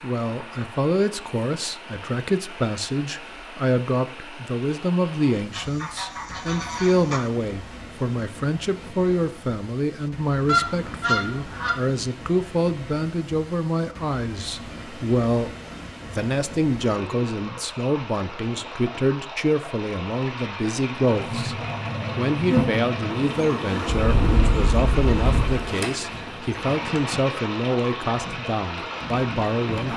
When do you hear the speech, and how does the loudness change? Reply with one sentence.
The speech can be heard from 0.0 to 29.9 s, at a steady volume.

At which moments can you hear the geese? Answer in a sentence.
The geese can be heard from 5.5 to 7.2 s, from 10.4 to 11.7 s and from 23.9 to 25.6 s.